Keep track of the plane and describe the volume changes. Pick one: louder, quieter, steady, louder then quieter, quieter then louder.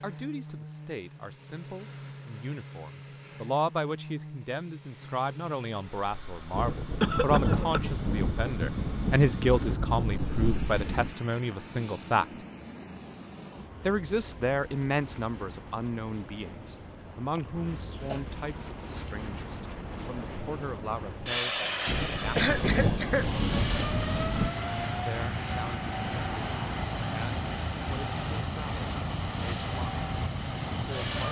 louder.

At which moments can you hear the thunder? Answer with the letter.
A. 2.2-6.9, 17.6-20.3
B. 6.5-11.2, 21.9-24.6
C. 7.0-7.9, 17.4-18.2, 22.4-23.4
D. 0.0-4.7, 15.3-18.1
B.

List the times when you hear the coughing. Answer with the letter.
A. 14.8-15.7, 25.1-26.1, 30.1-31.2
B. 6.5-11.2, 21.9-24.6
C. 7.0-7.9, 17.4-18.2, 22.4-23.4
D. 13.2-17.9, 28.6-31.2
C.